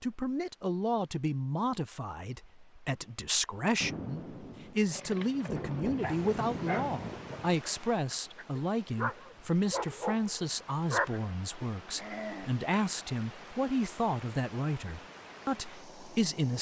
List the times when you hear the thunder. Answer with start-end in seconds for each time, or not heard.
3.8-7.6.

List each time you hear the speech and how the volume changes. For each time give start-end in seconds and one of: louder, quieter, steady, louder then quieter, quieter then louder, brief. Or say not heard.
0.0-16.5 steady.